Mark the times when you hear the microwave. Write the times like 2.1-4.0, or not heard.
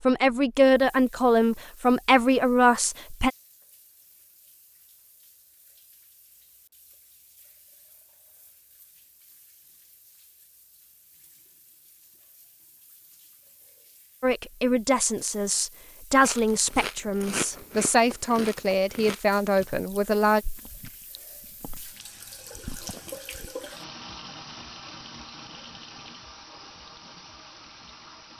not heard.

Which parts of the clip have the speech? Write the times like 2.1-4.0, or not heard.
0.1-3.3, 14.2-20.4.